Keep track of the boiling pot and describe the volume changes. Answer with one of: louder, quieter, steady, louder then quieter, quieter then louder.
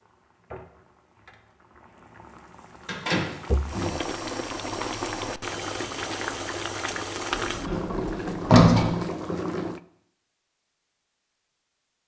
louder.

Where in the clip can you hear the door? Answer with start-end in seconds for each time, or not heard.
2.9-3.9, 7.3-8.9.